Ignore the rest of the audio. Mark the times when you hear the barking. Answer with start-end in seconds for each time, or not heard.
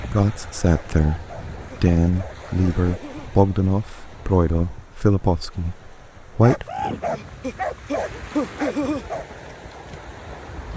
0.7-3.4, 6.4-9.2.